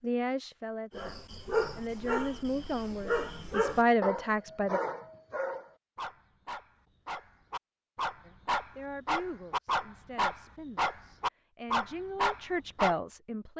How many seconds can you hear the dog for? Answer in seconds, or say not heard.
12 s.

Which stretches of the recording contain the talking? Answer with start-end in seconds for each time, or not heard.
0.0-4.8, 8.2-13.5.